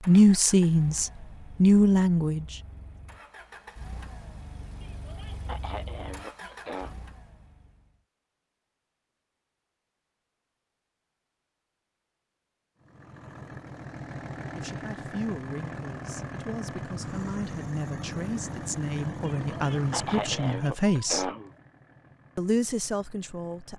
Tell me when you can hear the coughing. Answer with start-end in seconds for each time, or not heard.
4.8-7.0, 19.2-21.5.